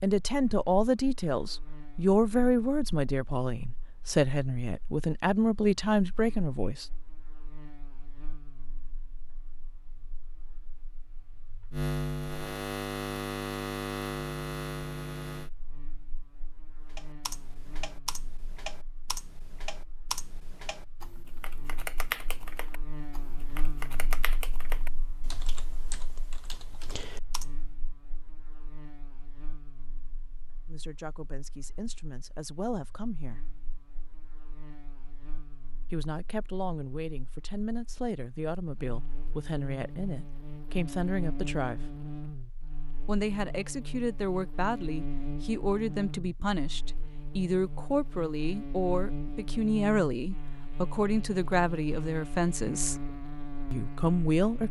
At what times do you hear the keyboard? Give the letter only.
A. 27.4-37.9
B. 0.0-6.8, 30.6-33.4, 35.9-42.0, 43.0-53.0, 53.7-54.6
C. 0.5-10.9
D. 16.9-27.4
D.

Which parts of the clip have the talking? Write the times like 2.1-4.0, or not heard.
0.0-6.8, 30.6-33.4, 35.9-42.0, 43.0-53.0, 53.7-54.6.